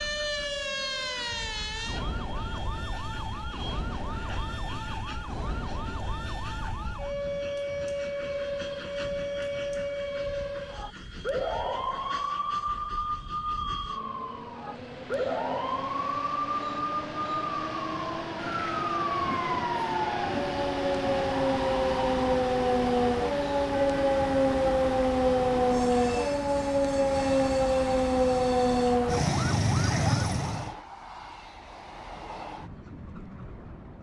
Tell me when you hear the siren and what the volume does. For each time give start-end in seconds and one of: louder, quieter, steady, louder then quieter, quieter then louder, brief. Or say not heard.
0.0-30.8 louder.